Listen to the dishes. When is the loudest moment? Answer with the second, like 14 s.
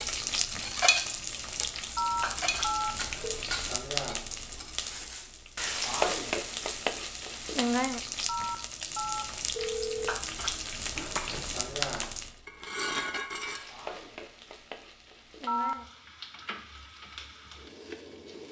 1 s.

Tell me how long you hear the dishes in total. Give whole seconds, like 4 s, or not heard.
7 s.